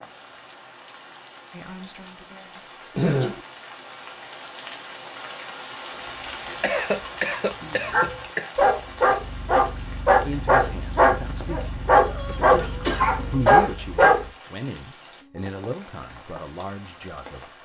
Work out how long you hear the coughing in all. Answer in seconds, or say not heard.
4 s.